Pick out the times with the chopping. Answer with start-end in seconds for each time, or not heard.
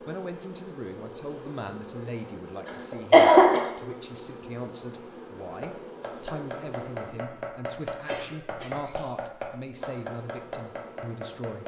5.4-11.6.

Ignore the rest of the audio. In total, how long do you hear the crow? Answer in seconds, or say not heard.
not heard.